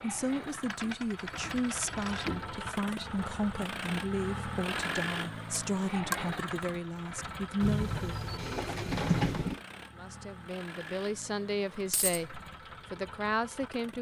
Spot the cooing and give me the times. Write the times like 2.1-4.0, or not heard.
0.8-2.7, 7.6-9.6.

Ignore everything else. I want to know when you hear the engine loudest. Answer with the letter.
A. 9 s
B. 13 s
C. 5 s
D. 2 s
C.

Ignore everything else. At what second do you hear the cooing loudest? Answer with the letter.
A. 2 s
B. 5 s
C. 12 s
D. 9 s
D.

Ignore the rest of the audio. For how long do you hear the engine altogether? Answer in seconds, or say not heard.
14 s.